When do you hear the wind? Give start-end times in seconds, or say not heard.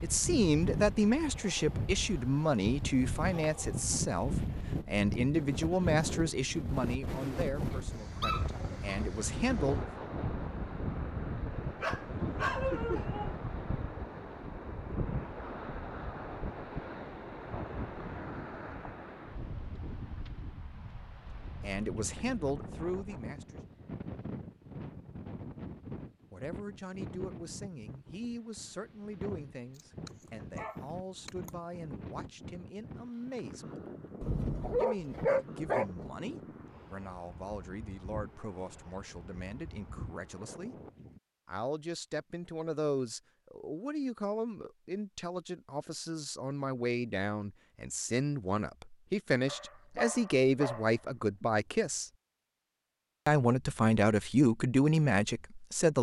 0.0-41.2.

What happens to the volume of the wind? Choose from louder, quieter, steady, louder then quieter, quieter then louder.
quieter.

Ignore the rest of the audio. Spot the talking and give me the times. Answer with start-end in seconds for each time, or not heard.
0.0-9.8, 21.6-23.6, 26.3-33.8, 34.8-40.8, 41.5-52.1, 53.2-55.9.